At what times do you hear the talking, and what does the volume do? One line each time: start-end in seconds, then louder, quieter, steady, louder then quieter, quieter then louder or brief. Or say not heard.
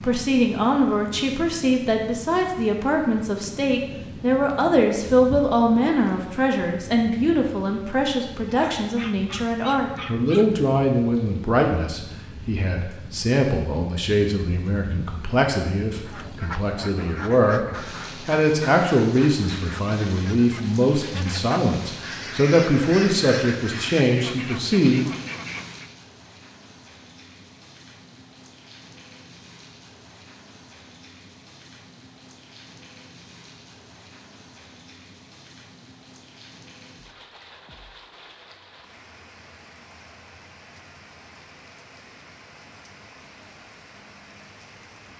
0.0-25.1 steady.